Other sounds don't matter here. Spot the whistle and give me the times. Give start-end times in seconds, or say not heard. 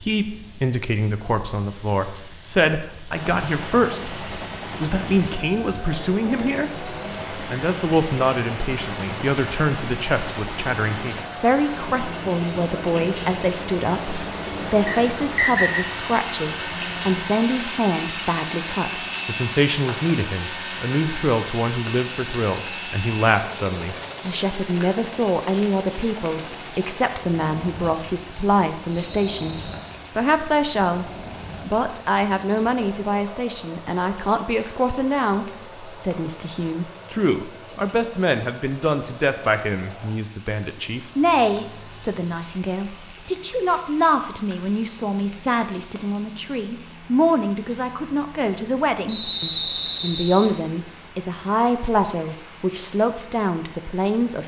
14.8-15.8, 29.1-29.9, 49.0-50.5.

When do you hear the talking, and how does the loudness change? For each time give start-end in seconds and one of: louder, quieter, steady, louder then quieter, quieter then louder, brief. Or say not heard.
0.0-54.4 steady.